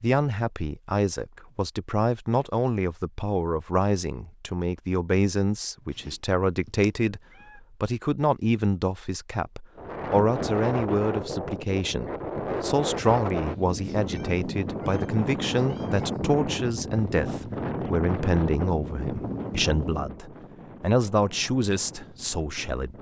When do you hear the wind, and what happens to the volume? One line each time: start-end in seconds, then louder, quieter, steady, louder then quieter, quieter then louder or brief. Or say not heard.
9.8-22.9 quieter.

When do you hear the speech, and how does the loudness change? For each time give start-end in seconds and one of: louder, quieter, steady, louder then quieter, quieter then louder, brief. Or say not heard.
0.0-22.9 steady.